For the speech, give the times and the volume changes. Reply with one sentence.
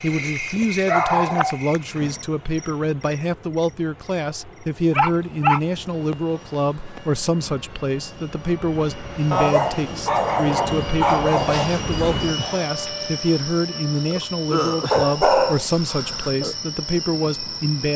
You can hear the speech from 0.0 to 17.9 s, at a steady volume.